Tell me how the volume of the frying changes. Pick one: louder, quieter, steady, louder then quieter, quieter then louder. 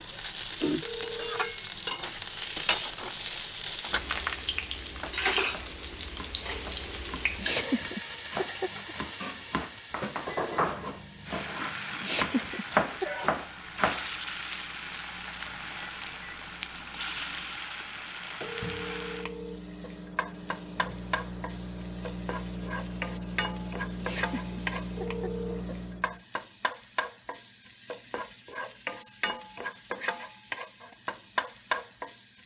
quieter.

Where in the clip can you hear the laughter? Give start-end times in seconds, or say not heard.
7.3-8.9, 12.0-13.2, 24.0-25.8.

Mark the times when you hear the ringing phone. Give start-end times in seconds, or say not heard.
0.8-1.6, 18.4-19.6, 24.9-25.6.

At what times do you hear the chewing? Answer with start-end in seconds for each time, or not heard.
not heard.